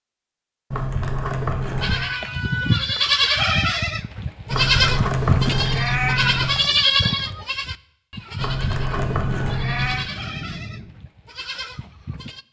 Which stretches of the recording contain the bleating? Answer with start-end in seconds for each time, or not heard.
1.8-12.4.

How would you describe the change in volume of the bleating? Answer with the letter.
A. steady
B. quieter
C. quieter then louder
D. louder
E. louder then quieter
B.